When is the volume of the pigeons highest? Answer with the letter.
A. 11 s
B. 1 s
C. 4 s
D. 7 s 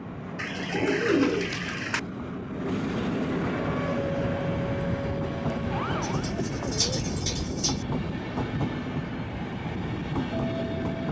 B.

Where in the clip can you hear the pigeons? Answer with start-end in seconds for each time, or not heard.
0.3-2.0, 6.0-7.8.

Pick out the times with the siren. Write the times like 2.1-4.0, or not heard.
3.6-6.3.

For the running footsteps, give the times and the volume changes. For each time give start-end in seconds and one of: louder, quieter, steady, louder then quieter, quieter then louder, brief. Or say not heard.
not heard.